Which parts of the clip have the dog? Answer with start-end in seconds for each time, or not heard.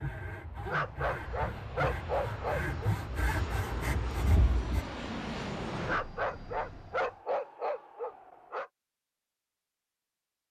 0.7-2.8, 5.8-8.7.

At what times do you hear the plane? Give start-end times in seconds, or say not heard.
0.2-7.2.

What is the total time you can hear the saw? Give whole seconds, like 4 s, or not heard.
5 s.